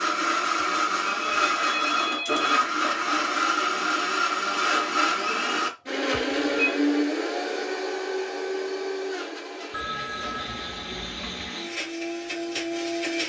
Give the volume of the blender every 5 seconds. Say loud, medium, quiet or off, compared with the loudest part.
loud, loud, medium.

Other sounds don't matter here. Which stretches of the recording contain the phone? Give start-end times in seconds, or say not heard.
0.6-2.6, 6.1-6.8, 9.7-11.5.